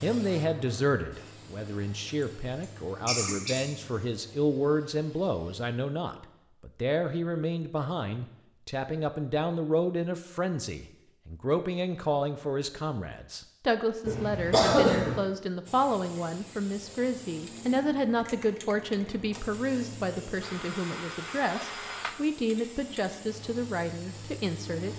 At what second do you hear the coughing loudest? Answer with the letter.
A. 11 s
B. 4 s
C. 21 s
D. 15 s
D.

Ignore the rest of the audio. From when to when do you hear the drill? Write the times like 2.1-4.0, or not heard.
20.4-22.2.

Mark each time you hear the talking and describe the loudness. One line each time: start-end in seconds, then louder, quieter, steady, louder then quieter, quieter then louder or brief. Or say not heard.
0.0-24.9 steady.